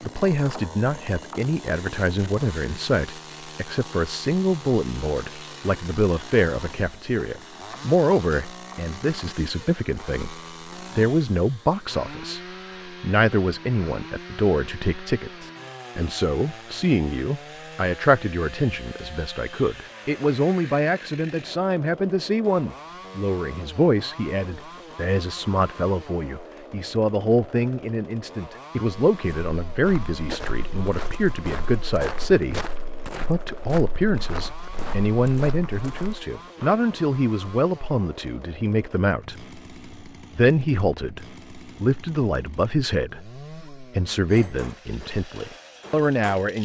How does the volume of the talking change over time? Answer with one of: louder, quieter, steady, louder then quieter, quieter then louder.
steady.